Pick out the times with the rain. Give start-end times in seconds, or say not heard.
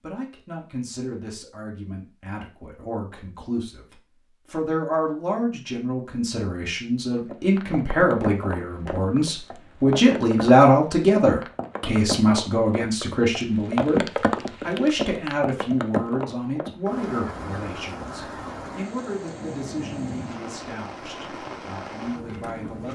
7.2-22.8.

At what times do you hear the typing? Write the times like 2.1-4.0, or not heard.
not heard.